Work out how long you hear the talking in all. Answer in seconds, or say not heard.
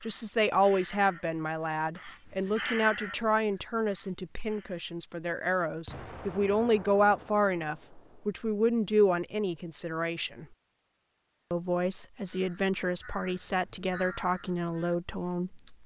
15 s.